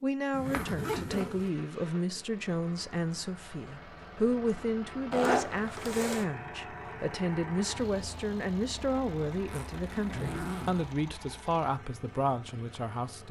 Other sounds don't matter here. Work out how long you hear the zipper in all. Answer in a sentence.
You can hear the zipper for 4 seconds altogether.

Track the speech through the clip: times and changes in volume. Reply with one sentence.
You can hear the speech from 0.0 to 13.2 s, at a steady volume.